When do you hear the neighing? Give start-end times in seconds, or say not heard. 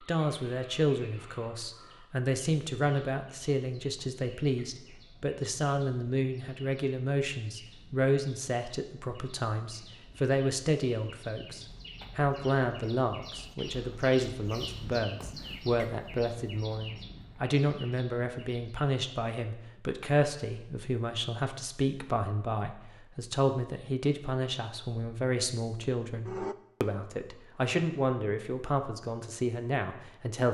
25.8-26.6.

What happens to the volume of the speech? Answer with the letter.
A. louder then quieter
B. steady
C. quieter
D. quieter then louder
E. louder
B.